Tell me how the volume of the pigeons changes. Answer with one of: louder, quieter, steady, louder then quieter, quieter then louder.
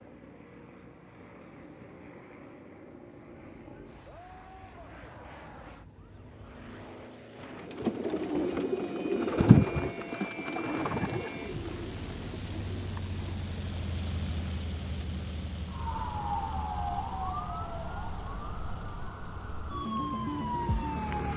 louder then quieter.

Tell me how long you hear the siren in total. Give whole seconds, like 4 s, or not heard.
9 s.